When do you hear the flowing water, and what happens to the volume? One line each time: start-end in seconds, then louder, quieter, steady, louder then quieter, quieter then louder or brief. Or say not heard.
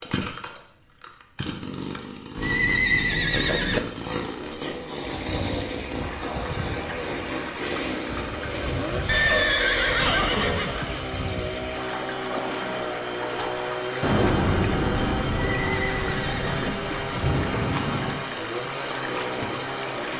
5.0-20.1 steady.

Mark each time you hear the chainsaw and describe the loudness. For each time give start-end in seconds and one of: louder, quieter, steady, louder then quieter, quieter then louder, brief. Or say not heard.
0.0-20.1 steady.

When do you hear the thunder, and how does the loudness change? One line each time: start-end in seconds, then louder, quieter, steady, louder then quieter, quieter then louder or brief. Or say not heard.
14.0-18.2 quieter then louder.